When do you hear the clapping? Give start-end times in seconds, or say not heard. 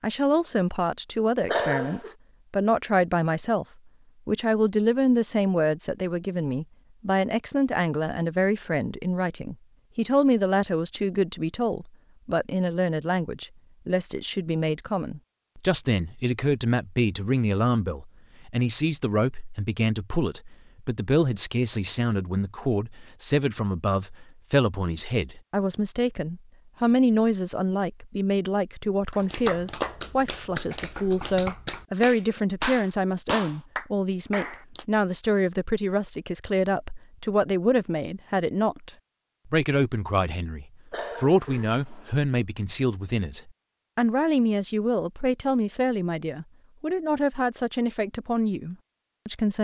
29.1-34.9.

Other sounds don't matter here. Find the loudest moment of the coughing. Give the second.
2 s.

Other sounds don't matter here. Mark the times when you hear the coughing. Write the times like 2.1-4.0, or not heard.
1.4-2.1, 40.9-42.1.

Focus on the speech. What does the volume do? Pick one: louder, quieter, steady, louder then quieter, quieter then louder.
steady.